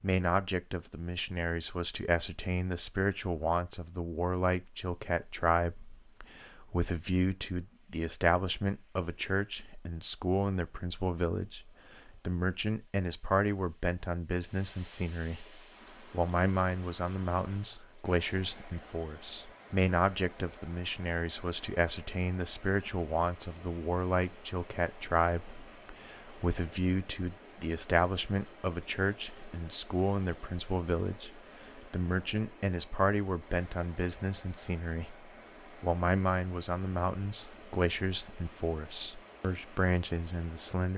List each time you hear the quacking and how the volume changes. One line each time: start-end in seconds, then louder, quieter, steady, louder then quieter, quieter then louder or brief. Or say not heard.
not heard.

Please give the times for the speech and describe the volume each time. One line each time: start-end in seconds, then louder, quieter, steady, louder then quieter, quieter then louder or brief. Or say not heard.
0.0-40.9 steady.